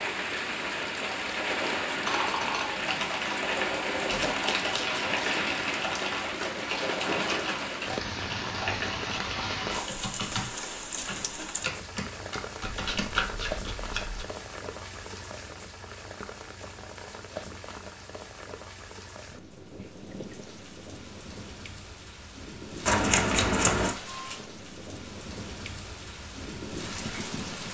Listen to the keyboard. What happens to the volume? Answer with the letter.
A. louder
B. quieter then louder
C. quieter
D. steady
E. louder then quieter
D.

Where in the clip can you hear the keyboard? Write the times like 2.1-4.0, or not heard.
2.0-13.7.